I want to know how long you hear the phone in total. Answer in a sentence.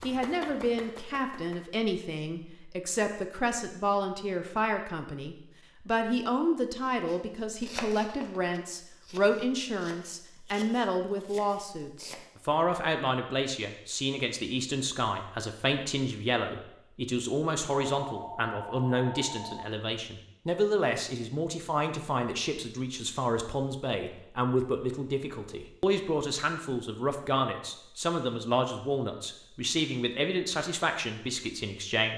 The phone can be heard for 2 seconds in total.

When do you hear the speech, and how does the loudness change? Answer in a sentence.
You can hear the speech from 0.0 to 32.1 s, at a steady volume.